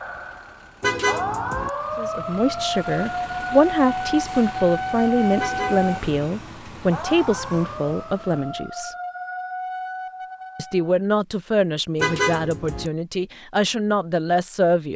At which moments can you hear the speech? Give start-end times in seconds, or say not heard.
1.9-8.9, 10.6-14.9.